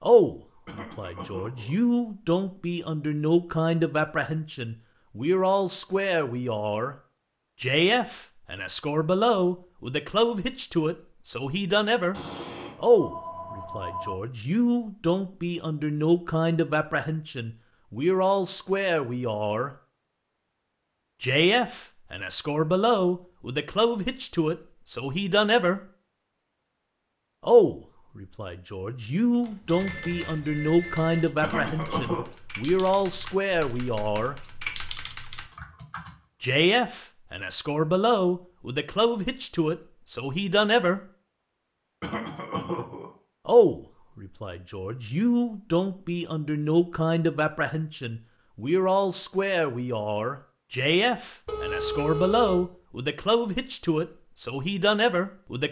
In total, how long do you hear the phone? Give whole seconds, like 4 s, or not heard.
5 s.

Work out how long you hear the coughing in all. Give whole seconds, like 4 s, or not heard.
3 s.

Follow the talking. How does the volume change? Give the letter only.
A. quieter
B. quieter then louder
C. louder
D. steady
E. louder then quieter
D.